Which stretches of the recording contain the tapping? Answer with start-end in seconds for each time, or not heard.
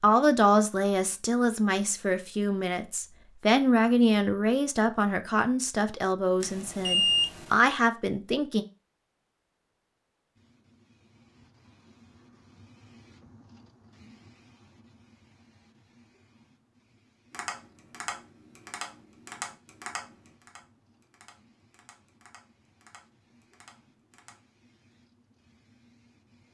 17.3-24.4.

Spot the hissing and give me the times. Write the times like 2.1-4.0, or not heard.
10.3-26.5.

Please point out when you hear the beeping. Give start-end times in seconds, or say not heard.
6.4-7.5.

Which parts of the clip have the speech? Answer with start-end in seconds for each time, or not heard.
0.0-8.7.